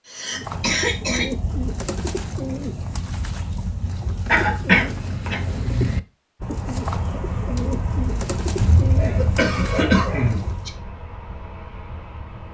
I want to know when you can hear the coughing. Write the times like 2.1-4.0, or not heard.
0.1-1.3, 4.2-5.4, 8.6-10.4.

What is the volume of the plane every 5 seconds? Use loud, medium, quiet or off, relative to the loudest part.
off, loud, medium.